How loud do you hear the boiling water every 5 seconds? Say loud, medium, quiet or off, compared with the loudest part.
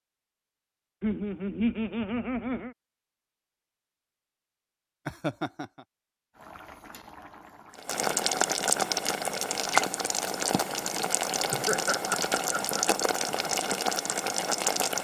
off, loud, loud.